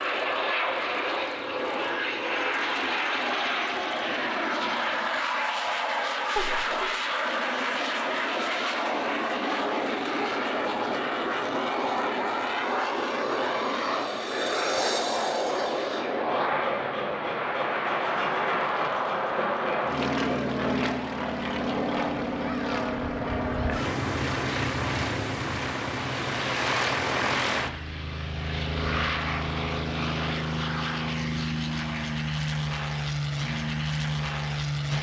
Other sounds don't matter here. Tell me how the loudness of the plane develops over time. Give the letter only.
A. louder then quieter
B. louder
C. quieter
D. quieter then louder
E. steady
E.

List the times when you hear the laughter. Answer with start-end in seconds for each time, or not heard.
6.3-7.0.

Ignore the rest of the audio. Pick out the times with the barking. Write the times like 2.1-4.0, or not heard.
not heard.